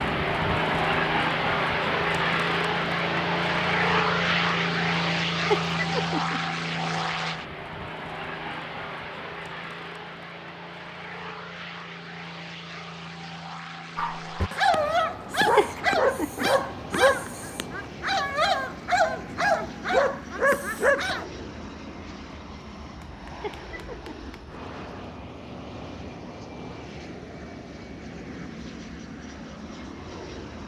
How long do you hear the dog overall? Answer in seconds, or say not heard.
7 s.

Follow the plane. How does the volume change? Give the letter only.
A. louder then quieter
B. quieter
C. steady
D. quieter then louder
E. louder
B.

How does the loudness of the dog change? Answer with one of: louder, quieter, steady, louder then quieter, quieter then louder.
steady.